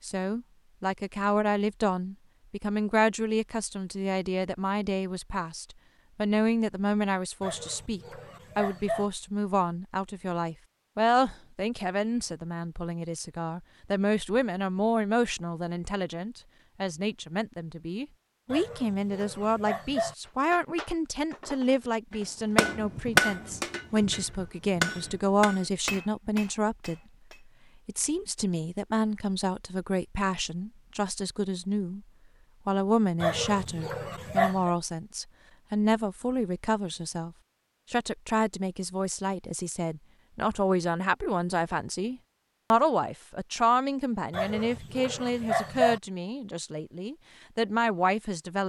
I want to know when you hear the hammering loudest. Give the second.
23 s.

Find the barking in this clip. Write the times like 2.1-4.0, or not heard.
7.4-9.1, 18.5-20.1, 33.2-34.7, 44.3-46.0.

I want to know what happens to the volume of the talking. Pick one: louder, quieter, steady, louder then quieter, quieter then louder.
steady.